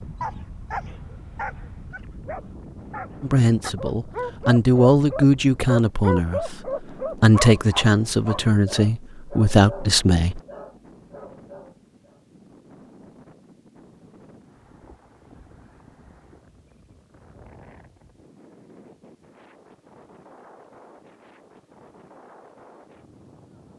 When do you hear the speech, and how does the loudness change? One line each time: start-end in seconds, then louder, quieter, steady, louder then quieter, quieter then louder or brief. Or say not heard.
3.2-10.4 steady.